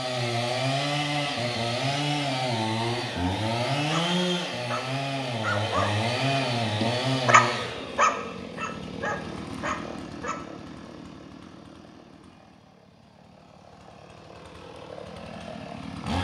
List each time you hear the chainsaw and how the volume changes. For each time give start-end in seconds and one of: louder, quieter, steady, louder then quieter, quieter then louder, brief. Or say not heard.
0.0-16.1 quieter.